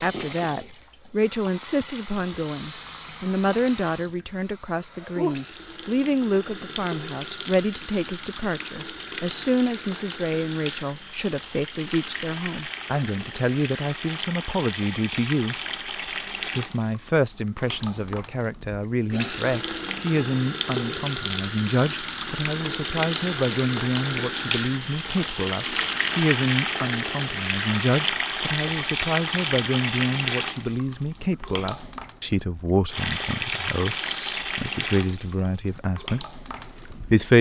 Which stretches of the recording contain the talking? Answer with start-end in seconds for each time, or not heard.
0.0-15.6, 16.5-37.3.